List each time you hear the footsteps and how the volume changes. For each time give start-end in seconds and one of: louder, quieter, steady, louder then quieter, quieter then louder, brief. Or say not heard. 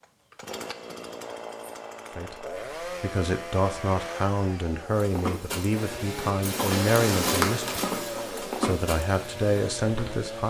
4.9-10.2 louder then quieter.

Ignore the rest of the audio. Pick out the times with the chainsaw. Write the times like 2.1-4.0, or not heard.
0.0-10.4.